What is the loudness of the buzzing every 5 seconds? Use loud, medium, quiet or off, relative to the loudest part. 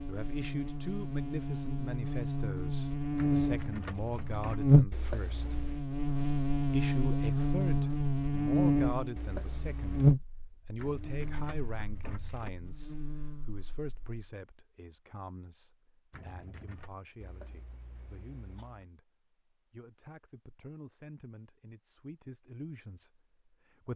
loud, loud, loud, off, off.